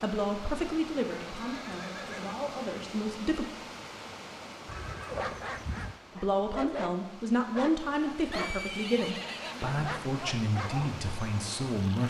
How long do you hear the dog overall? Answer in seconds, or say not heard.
6 s.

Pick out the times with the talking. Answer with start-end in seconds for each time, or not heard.
0.0-3.5, 6.2-12.0.